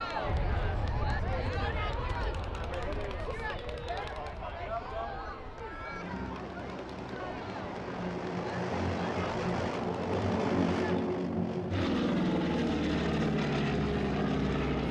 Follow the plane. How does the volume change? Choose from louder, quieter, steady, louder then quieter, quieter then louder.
quieter then louder.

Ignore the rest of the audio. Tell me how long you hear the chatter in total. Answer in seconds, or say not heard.
11 s.